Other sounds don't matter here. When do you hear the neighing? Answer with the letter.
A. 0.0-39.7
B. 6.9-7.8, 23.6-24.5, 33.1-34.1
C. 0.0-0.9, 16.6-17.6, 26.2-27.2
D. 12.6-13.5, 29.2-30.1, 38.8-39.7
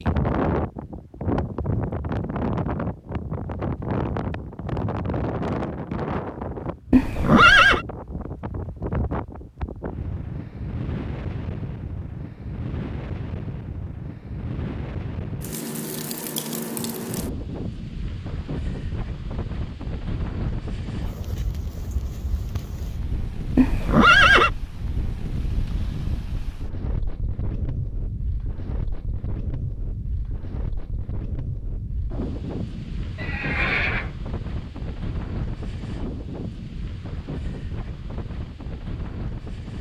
B.